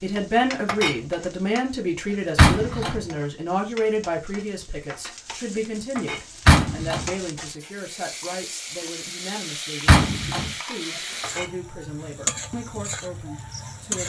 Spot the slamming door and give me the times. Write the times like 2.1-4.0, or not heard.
2.4-3.0, 6.5-7.1, 9.8-10.5.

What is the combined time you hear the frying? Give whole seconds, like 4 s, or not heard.
14 s.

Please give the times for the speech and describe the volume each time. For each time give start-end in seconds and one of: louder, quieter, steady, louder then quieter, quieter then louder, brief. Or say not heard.
0.0-14.0 quieter.